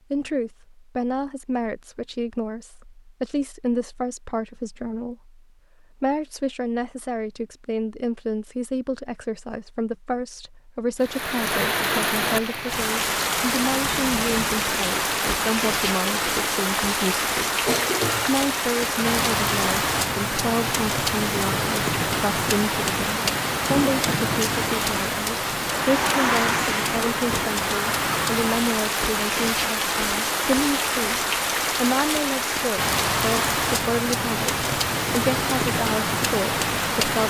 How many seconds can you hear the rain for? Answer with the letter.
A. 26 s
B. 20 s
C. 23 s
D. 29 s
A.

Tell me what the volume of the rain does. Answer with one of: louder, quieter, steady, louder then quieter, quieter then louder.
steady.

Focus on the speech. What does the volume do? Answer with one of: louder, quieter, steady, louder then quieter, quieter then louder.
steady.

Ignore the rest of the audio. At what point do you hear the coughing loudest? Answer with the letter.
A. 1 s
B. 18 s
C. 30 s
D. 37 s
B.